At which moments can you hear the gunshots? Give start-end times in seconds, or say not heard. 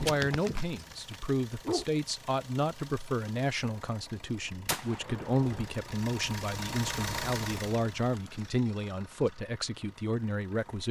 4.7-5.7.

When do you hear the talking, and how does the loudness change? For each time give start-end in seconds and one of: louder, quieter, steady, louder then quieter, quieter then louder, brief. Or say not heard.
0.0-10.8 steady.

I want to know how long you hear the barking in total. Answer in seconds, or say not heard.
2 s.